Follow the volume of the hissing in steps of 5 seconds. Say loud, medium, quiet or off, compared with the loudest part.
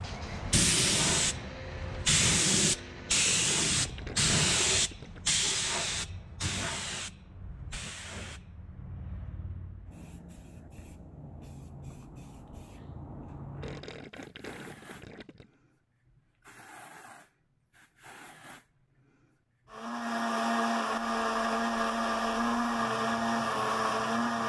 loud, medium, quiet, quiet, quiet.